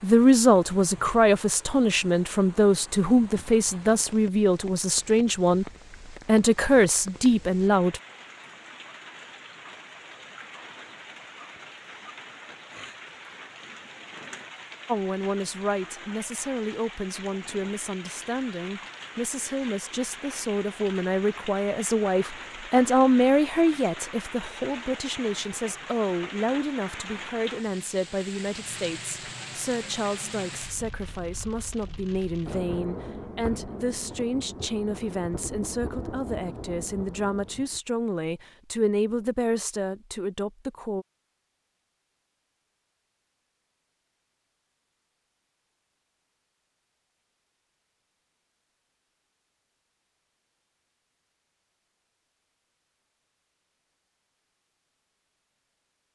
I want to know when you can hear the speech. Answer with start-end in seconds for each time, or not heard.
0.0-8.0, 14.8-41.0.